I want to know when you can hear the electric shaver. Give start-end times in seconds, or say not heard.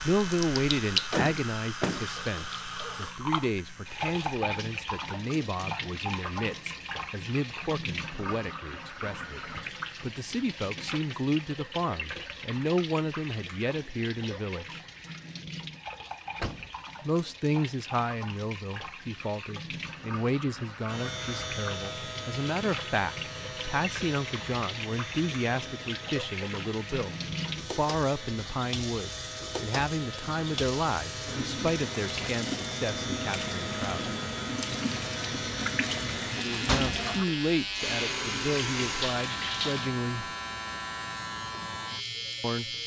0.0-4.2, 20.9-42.8.